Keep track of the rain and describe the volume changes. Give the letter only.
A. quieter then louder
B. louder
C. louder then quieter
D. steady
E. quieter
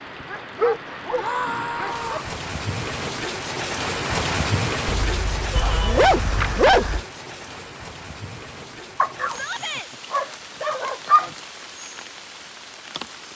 C.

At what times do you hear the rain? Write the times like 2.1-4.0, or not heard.
0.0-13.2.